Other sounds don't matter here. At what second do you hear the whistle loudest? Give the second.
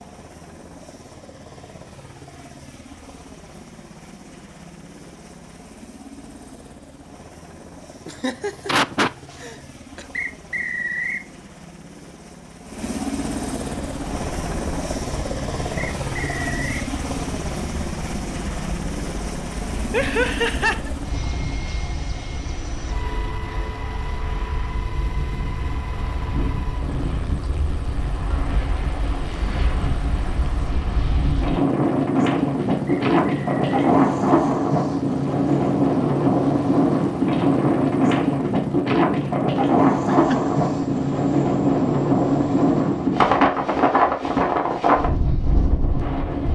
11 s.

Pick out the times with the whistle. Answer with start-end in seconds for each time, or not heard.
10.1-11.2, 15.8-16.8, 32.9-33.8.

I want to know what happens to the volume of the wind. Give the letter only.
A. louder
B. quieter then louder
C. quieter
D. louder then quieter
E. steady
A.